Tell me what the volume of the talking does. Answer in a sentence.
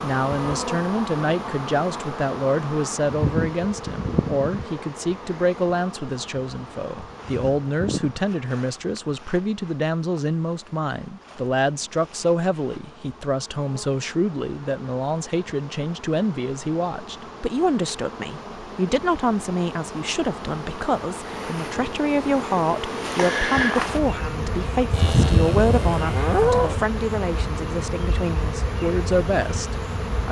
The loudness of the talking stays about the same.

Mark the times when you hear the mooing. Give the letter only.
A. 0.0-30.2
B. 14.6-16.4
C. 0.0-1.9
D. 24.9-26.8
D.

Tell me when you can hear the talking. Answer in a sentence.
The talking can be heard from 0.0 to 30.2 s.